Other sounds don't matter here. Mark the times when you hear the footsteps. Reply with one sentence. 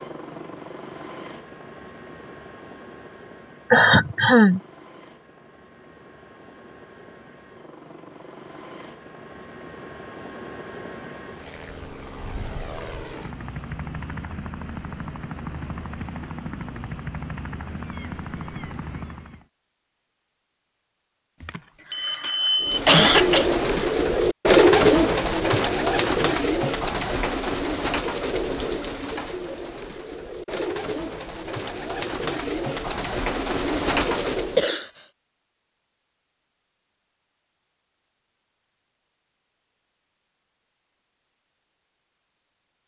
You can't hear the footsteps here.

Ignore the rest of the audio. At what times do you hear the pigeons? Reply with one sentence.
You can hear the pigeons from 22.6 to 34.6 s.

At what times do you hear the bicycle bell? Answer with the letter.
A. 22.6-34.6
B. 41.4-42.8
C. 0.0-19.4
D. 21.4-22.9
D.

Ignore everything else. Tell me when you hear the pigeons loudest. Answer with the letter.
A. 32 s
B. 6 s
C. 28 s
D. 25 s
D.